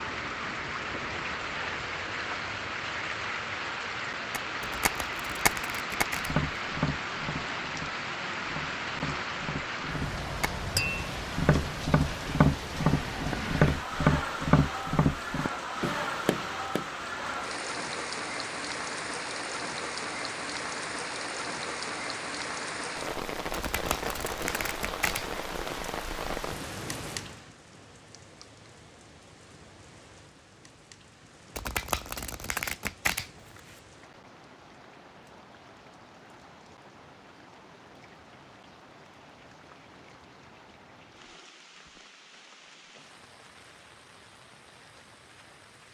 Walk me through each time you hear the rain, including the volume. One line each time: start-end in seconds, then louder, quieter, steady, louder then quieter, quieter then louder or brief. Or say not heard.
0.0-45.8 quieter.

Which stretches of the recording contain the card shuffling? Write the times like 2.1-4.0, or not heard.
4.6-6.3, 23.5-25.2, 31.6-33.8.